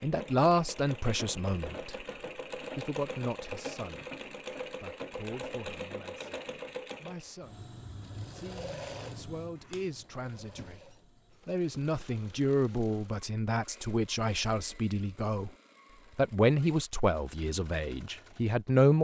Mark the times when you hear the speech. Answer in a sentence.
You can hear the speech from 0.0 to 2.0 s, from 2.8 to 4.0 s, from 4.8 to 15.5 s and from 16.1 to 18.9 s.